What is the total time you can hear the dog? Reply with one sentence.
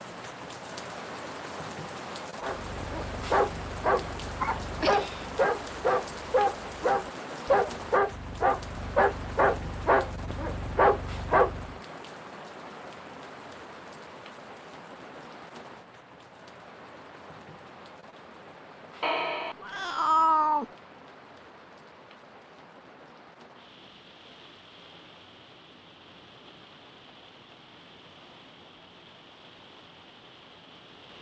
You can hear the dog for 9 seconds altogether.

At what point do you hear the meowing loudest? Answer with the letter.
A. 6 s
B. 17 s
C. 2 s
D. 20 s
D.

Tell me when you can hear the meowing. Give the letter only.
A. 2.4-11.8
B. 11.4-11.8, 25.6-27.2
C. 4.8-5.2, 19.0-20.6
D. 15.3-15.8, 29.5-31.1
C.